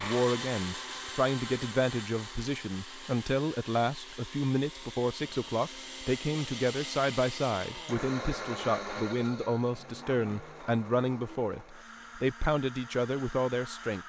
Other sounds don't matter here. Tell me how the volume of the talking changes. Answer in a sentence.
The volume of the talking stays about the same.